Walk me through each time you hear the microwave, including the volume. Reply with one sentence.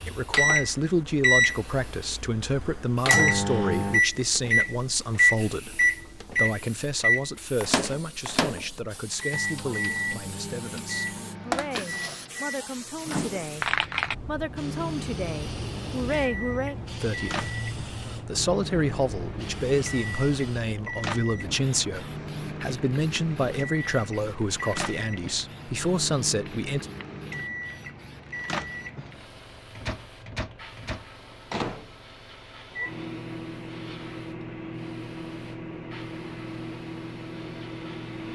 The microwave can be heard from 0.0 to 38.3 s, getting quieter.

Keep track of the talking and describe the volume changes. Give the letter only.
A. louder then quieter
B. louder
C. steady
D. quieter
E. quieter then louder
E.